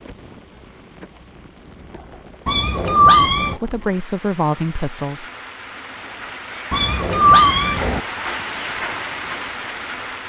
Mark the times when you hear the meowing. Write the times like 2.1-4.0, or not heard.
2.5-3.6, 6.7-8.0.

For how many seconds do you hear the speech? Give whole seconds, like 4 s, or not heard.
2 s.